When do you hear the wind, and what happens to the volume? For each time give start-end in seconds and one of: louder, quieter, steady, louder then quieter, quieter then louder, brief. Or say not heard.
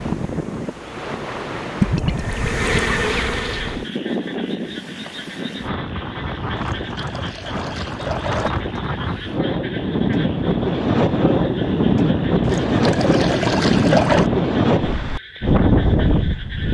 0.0-16.7 louder.